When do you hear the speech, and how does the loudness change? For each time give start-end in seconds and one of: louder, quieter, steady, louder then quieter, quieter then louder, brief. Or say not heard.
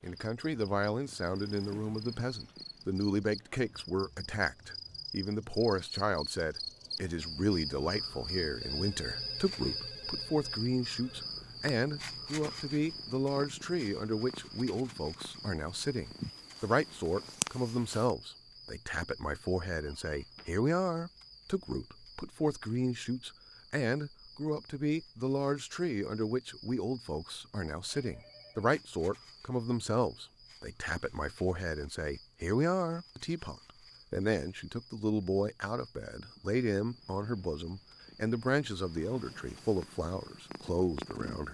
0.0-41.4 steady.